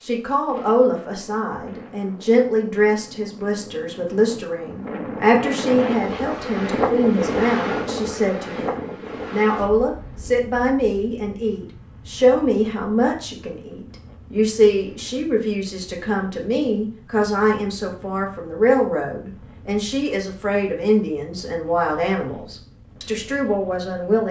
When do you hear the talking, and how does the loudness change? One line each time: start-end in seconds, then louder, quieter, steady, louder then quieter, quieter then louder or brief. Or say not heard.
0.0-24.2 steady.